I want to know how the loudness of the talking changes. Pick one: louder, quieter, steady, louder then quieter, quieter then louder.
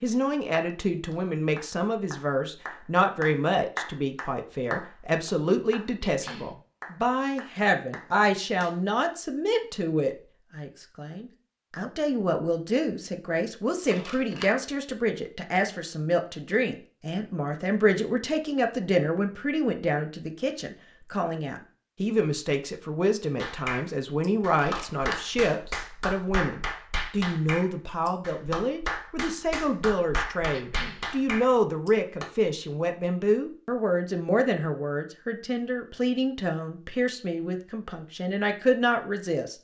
steady.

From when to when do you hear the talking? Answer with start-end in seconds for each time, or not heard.
0.0-39.5.